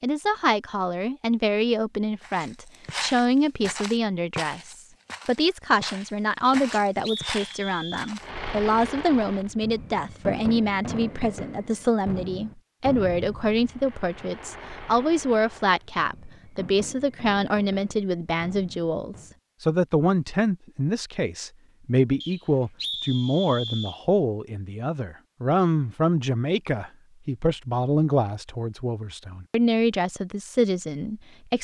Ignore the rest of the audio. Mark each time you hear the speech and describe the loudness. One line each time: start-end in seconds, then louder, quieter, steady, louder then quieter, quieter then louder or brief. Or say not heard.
0.0-31.5 steady.